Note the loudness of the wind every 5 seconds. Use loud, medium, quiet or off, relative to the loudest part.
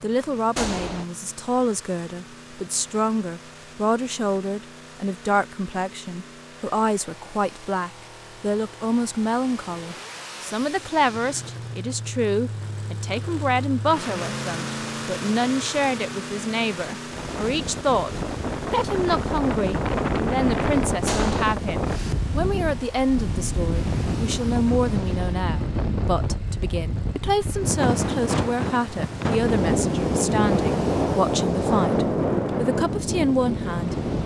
off, off, off, medium, loud, loud, loud.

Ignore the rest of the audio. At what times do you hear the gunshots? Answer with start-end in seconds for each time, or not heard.
0.6-1.1, 21.1-21.6.